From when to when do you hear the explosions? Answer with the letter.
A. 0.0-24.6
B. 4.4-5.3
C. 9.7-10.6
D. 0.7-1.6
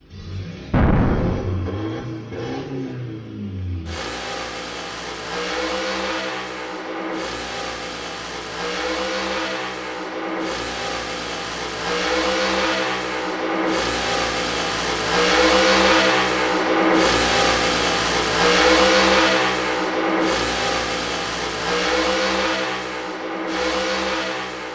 D.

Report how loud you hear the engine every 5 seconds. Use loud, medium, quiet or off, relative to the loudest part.
quiet, medium, medium, loud, medium.